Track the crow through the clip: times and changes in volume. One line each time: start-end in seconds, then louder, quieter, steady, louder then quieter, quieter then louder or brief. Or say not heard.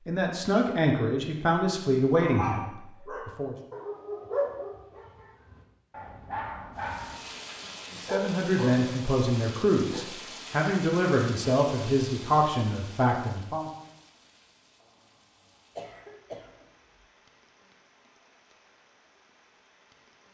not heard.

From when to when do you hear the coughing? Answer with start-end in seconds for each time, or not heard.
15.8-17.1.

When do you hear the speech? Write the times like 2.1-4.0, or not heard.
0.1-3.5, 7.9-13.7.